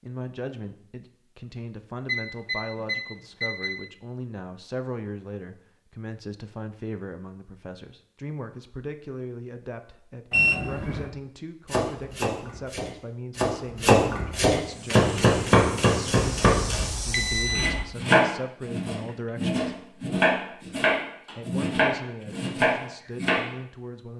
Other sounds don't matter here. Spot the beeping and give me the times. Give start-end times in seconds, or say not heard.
2.0-3.8, 10.3-11.1, 16.1-17.9.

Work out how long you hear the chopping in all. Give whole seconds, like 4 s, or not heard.
12 s.